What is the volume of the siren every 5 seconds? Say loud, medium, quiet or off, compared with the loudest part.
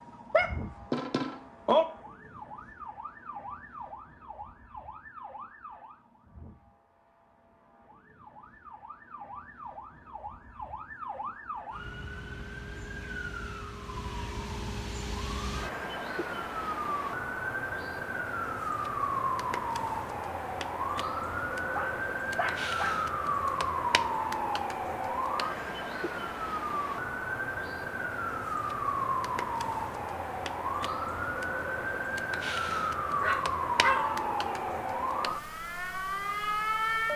quiet, quiet, medium, loud, loud, loud, loud, loud.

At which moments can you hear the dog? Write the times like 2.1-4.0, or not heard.
0.3-1.9, 21.7-23.1, 33.2-34.8.